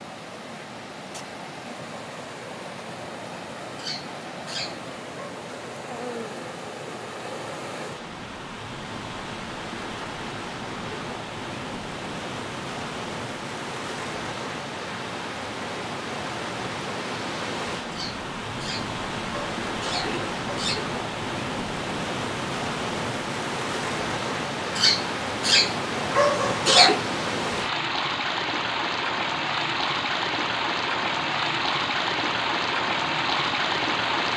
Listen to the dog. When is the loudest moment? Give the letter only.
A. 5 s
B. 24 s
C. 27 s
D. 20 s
C.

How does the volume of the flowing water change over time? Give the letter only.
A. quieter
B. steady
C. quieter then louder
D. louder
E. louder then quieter
D.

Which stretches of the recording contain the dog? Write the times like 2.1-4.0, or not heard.
3.8-5.3, 17.9-20.9, 24.8-27.0.